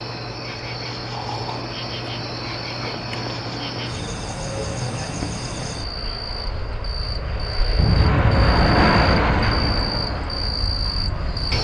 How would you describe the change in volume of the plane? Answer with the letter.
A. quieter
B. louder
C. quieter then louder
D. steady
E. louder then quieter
B.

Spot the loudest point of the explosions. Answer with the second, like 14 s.
8 s.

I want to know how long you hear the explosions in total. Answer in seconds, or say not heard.
2 s.